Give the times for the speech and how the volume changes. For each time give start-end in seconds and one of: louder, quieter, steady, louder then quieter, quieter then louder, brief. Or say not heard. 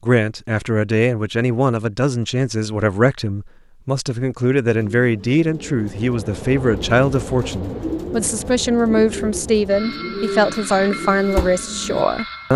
0.0-12.5 steady.